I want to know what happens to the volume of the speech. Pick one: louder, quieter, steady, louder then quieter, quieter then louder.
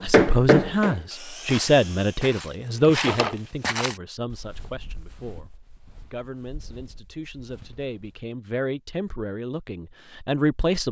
quieter then louder.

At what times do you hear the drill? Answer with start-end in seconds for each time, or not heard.
0.0-2.3.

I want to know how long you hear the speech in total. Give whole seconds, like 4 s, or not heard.
11 s.